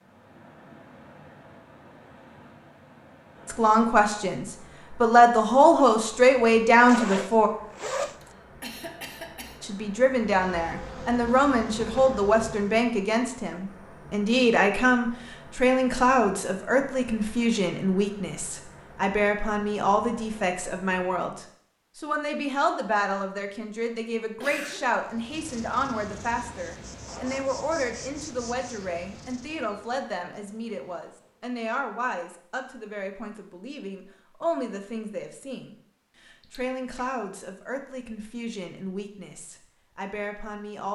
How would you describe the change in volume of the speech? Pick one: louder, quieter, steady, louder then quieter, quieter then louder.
quieter.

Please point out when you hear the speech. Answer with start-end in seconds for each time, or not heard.
3.5-7.5, 9.6-40.9.